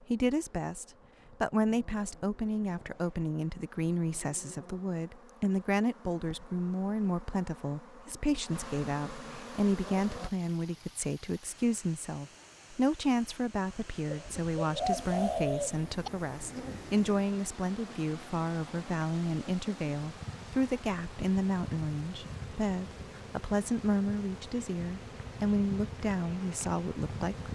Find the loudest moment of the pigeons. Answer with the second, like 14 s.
15 s.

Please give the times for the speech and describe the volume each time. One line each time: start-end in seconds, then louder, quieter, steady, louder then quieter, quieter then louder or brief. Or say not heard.
0.1-27.4 steady.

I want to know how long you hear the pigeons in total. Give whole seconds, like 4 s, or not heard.
2 s.